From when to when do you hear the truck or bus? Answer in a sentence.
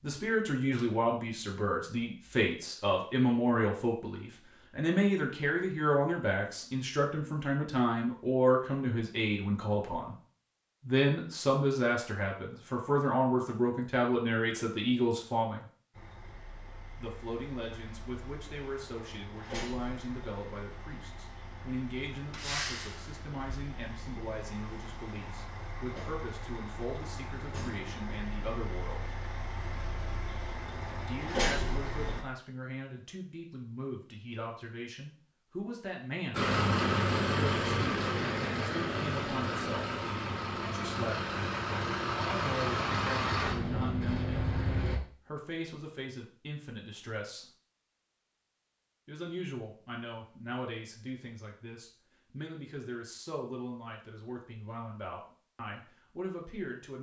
The truck or bus can be heard from 15.9 to 32.2 s and from 36.3 to 45.0 s.